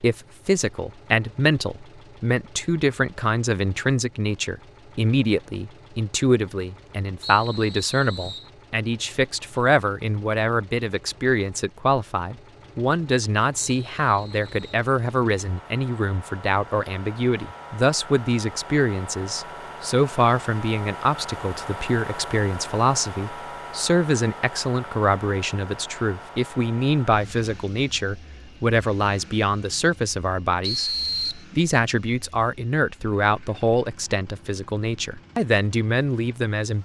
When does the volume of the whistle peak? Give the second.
31 s.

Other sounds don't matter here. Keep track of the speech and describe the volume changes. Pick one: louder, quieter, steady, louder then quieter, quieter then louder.
steady.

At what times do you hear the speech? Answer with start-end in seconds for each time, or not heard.
0.0-36.8.